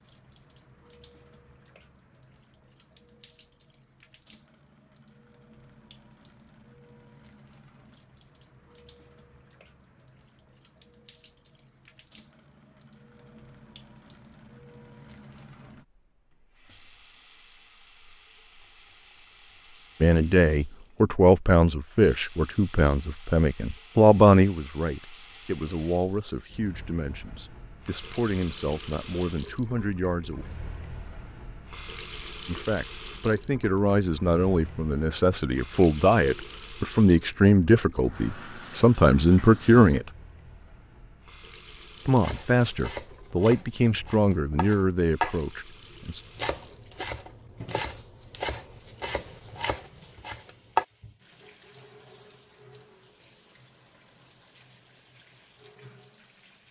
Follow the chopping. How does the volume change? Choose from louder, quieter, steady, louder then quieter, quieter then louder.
louder then quieter.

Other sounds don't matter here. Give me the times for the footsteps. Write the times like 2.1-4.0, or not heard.
not heard.